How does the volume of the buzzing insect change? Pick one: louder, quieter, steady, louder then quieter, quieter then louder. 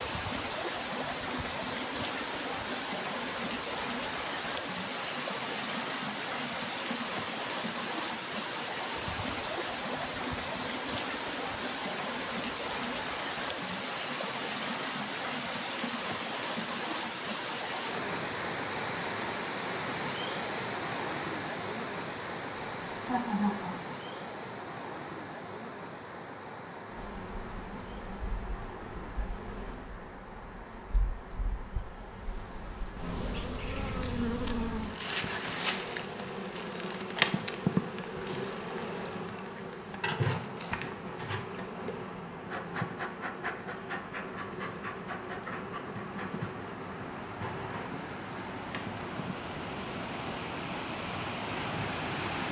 louder then quieter.